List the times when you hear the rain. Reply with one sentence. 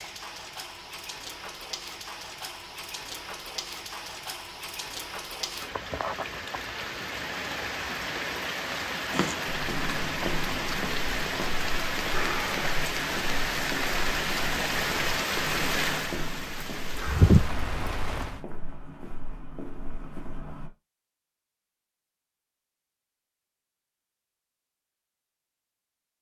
You can hear the rain from 0.0 to 18.4 s.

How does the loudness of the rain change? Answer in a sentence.
The loudness of the rain goes up.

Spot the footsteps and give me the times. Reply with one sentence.
You can hear the footsteps from 9.1 to 20.7 s.